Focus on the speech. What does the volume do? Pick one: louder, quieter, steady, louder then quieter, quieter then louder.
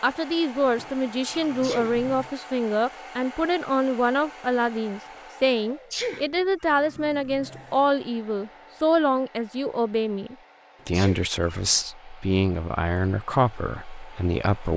steady.